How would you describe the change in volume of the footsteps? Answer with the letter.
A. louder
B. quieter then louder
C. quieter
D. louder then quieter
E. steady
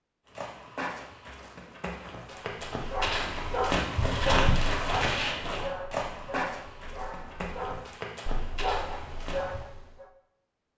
D.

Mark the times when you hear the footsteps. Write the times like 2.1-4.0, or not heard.
0.2-9.7.